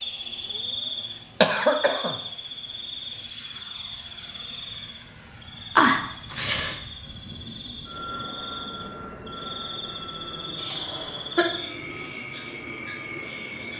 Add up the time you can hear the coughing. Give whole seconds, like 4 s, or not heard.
3 s.